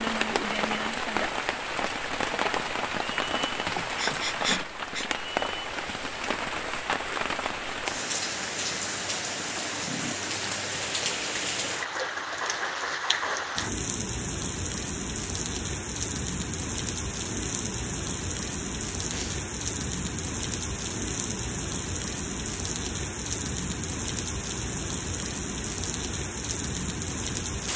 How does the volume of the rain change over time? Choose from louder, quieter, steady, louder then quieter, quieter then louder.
steady.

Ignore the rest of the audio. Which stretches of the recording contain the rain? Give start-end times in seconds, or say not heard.
0.0-27.7.